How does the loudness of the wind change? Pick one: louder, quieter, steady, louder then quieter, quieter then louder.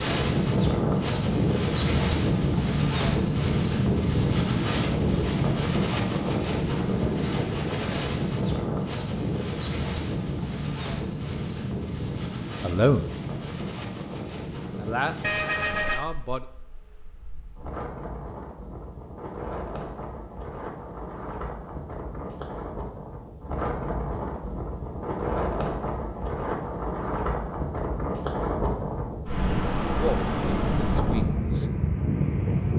quieter then louder.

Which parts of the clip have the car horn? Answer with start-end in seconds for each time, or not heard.
15.2-16.1.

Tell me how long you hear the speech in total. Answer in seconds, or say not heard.
4 s.